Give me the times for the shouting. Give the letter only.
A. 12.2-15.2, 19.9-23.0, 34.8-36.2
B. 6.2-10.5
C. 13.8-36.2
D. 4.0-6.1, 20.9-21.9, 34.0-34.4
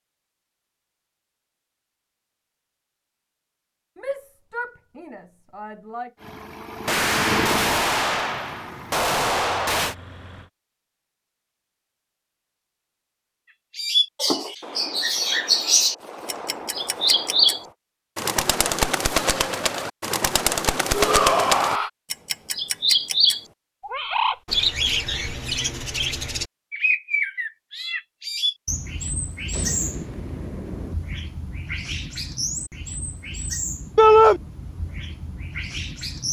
D.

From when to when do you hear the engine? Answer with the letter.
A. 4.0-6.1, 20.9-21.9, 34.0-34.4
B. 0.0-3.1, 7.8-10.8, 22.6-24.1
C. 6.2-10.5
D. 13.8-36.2
C.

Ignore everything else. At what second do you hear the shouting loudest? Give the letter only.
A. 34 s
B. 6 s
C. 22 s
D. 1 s
A.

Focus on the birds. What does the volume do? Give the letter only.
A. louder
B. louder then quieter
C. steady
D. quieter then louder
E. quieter
E.